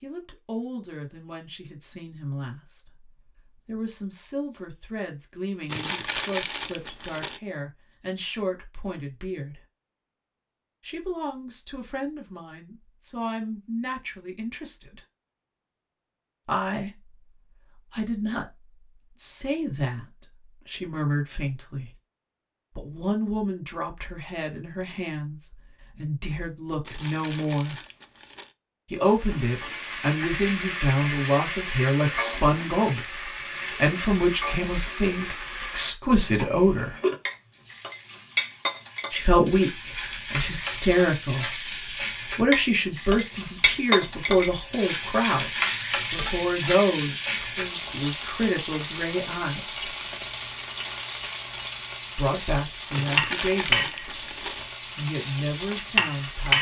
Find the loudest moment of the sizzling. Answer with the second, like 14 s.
56 s.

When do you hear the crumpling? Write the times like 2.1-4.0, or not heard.
5.7-7.4, 26.8-28.6, 52.9-54.7.